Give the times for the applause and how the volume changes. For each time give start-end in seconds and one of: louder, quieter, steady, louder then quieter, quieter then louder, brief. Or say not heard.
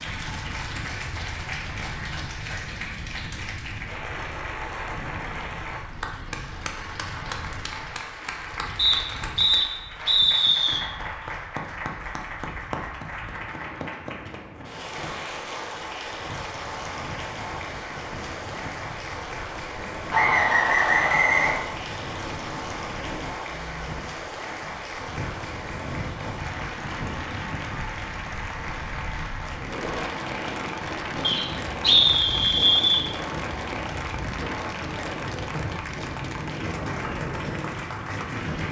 0.0-38.6 steady.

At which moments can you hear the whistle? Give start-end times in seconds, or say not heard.
8.8-10.8, 20.1-21.6, 31.2-33.0.